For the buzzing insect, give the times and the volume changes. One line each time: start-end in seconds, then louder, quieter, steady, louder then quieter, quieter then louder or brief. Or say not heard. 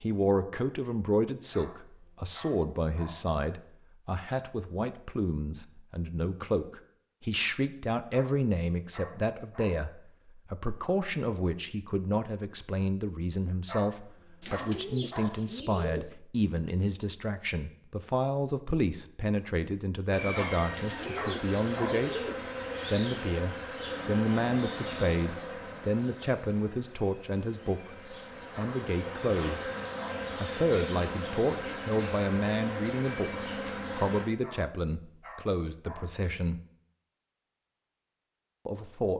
20.1-34.2 quieter then louder.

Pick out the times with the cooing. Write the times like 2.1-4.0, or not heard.
14.4-16.1, 20.7-22.4.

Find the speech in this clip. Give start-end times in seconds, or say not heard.
0.0-22.1, 22.9-29.7, 30.4-36.6, 38.6-39.1.